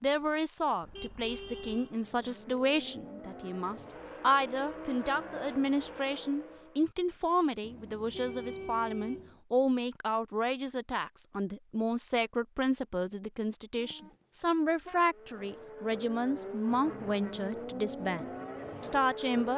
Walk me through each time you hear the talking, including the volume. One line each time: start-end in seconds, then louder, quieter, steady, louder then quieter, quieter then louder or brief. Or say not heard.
0.0-19.5 steady.